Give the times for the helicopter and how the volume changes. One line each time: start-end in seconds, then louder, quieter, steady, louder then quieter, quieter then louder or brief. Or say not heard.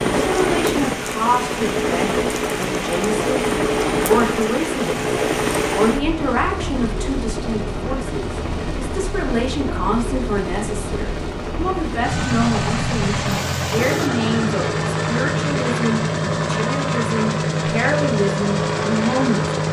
0.0-19.6 quieter then louder.